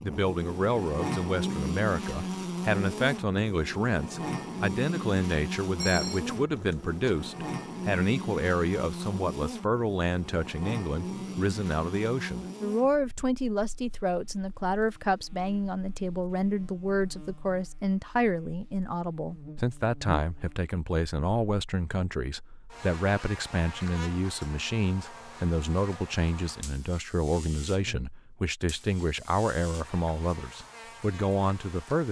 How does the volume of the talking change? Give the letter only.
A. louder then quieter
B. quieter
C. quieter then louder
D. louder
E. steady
E.